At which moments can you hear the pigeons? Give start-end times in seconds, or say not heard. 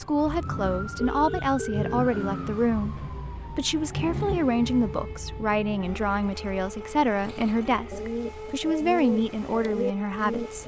7.2-10.6.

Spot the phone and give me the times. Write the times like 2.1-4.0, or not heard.
0.9-2.0.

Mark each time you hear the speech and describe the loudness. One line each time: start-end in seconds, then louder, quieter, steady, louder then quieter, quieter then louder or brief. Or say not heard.
0.0-10.6 steady.